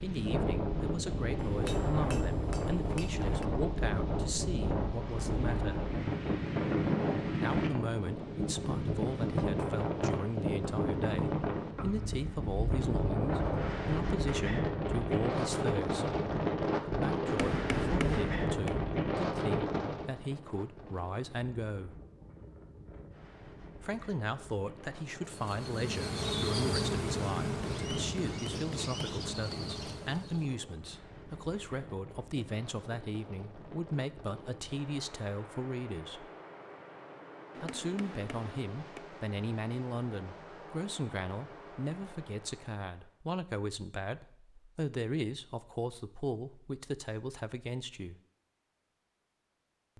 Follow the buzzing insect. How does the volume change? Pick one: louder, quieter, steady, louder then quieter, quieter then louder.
quieter.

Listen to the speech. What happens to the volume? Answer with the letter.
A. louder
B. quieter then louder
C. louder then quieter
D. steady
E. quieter
D.